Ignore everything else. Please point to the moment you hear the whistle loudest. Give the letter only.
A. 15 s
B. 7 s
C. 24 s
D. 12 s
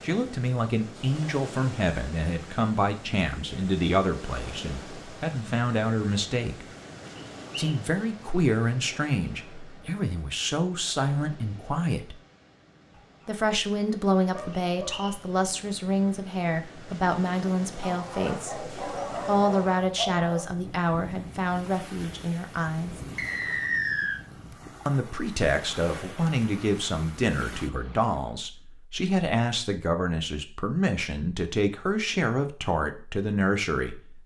C.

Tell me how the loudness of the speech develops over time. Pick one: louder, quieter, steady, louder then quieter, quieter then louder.
steady.